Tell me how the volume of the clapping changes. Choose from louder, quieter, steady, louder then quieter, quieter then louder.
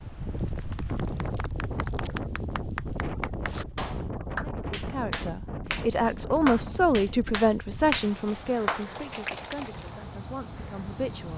louder.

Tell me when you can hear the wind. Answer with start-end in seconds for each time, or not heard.
0.0-11.3.